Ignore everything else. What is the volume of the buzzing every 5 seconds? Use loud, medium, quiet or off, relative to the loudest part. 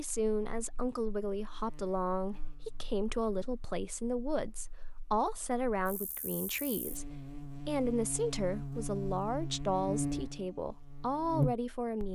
quiet, medium, loud.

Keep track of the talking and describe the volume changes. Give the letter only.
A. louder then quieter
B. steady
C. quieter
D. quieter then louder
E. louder
B.